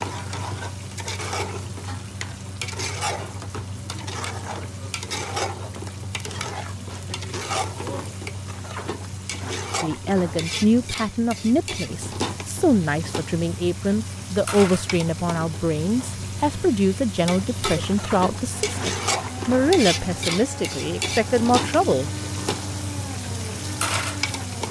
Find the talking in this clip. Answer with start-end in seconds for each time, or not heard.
9.8-22.2.